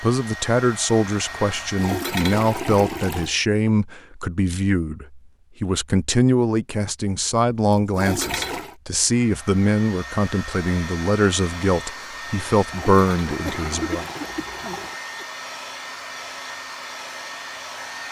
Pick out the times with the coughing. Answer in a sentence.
You can hear the coughing from 13.4 to 15.2 s.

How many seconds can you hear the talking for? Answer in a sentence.
The talking can be heard for 14 seconds in total.